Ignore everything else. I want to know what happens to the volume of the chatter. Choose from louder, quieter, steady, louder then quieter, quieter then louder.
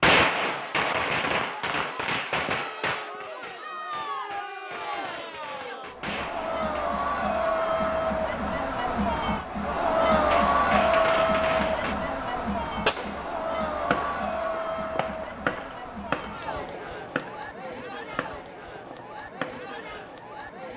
louder then quieter.